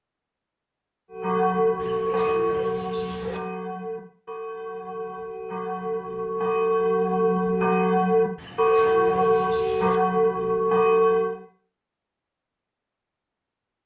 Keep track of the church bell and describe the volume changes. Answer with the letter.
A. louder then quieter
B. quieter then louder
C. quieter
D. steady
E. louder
B.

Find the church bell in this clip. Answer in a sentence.
You can hear the church bell from 1.1 to 11.4 s.